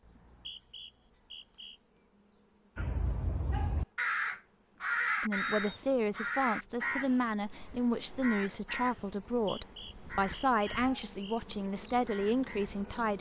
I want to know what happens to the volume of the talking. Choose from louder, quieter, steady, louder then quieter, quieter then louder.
steady.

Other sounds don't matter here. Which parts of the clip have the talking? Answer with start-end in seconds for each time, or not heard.
5.2-13.1.